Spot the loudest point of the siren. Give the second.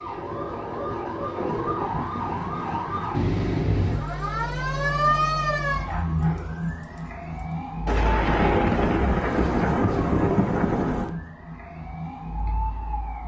5 s.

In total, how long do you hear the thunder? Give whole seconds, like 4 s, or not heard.
3 s.